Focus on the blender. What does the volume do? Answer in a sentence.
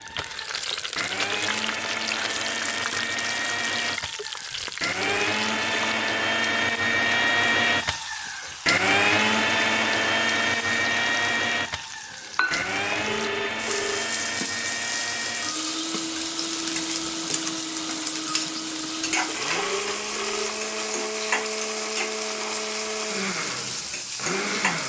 The volume of the blender goes up, then down.